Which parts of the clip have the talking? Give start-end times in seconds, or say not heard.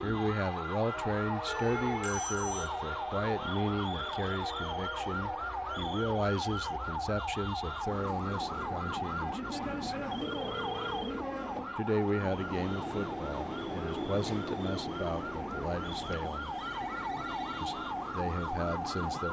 0.0-9.9, 11.8-16.6, 17.6-19.2.